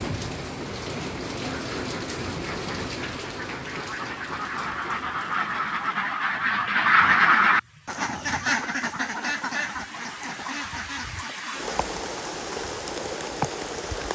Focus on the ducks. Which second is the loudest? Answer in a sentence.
The volume of the ducks peaks at 7 seconds.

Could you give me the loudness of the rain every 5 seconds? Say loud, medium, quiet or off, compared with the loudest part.
loud, quiet, loud.